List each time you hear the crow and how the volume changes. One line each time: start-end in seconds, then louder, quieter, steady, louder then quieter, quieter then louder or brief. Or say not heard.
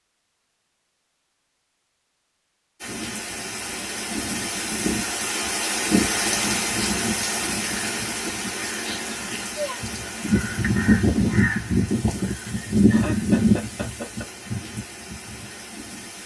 7.0-15.5 louder then quieter.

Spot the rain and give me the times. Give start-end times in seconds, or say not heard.
2.8-16.2.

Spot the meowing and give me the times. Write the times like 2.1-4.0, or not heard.
8.8-9.8.